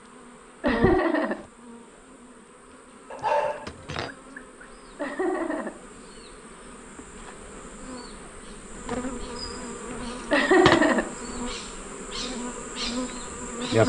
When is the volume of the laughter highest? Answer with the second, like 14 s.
11 s.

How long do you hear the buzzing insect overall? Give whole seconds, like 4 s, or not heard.
14 s.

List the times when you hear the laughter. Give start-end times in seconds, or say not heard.
0.6-1.4, 5.0-5.8, 10.3-11.1.